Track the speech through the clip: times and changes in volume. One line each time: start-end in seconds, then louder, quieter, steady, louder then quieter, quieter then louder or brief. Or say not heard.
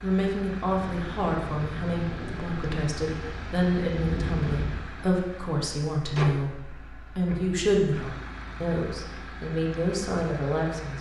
0.0-10.9 steady.